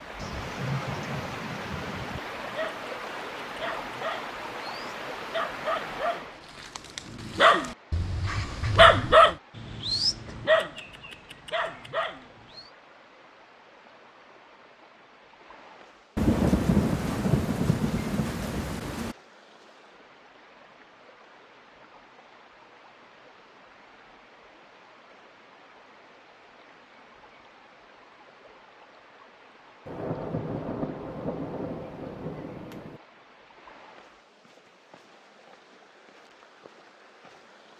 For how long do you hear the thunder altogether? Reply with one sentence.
The thunder can be heard for 8 seconds in total.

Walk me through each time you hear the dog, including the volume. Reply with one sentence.
The dog can be heard from 2.2 to 12.7 s, getting louder then quieter.